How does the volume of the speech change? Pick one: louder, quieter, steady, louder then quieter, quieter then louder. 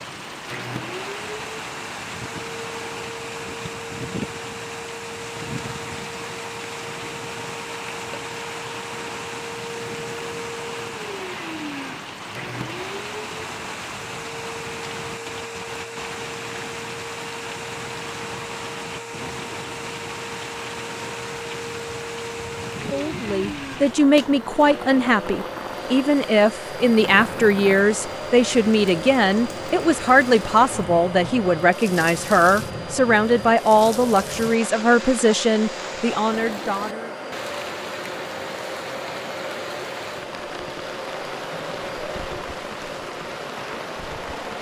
steady.